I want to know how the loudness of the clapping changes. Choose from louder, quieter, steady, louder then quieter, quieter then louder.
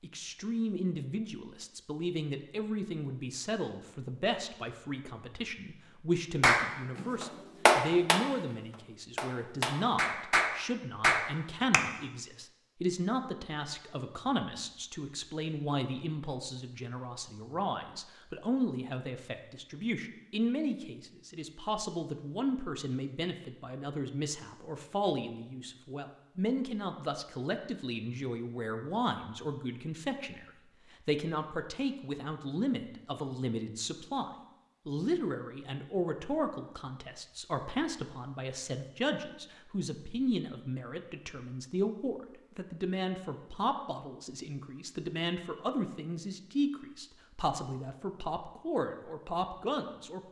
quieter then louder.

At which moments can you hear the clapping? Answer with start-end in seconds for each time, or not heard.
6.4-11.8.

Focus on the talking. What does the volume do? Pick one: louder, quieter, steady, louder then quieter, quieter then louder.
steady.